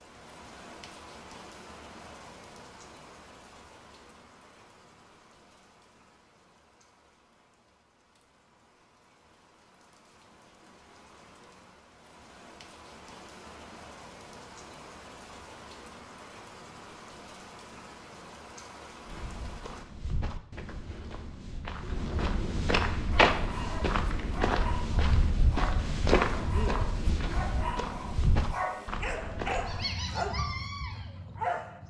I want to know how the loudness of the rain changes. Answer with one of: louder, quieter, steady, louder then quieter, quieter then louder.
quieter then louder.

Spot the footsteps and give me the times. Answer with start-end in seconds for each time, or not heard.
19.1-29.9.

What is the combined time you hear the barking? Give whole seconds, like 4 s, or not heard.
9 s.